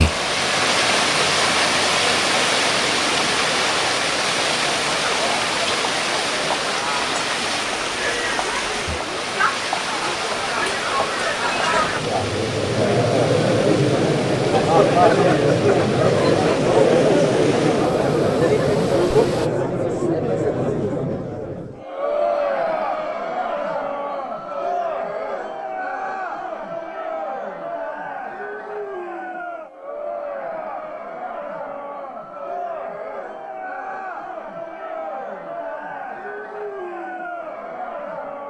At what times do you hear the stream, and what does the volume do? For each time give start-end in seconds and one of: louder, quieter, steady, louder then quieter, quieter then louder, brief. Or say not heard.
0.0-19.5 quieter.